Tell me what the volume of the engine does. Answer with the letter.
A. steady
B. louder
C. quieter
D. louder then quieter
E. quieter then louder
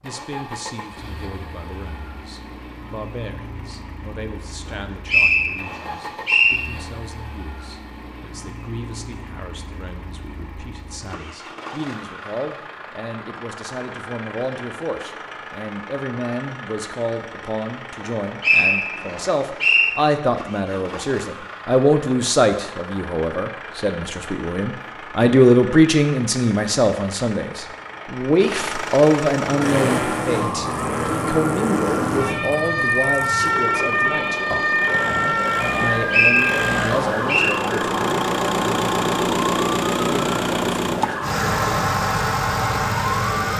B.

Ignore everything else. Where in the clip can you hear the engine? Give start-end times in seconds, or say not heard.
0.0-43.5.